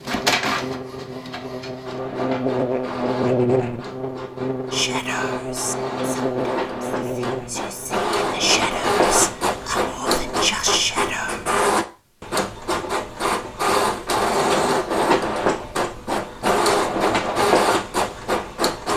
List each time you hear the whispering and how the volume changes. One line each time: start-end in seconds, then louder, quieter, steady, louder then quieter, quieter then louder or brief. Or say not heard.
4.7-11.4 quieter then louder.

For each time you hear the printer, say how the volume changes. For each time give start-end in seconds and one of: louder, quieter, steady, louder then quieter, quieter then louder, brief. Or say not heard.
0.0-18.9 louder.